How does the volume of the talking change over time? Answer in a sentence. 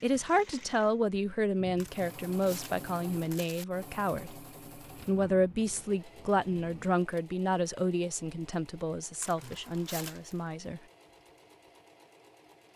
The loudness of the talking goes down.